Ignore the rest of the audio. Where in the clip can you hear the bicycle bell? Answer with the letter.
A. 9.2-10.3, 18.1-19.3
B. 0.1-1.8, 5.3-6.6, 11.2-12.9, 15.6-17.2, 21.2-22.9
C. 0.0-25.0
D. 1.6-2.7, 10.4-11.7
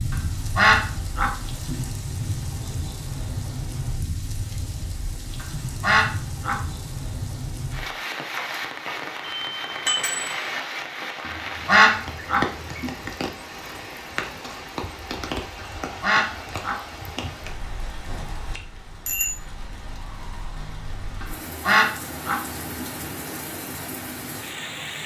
A.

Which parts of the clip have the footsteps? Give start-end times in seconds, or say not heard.
not heard.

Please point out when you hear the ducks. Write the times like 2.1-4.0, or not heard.
0.1-1.8, 5.3-6.6, 11.2-12.9, 15.6-17.2, 21.2-22.9.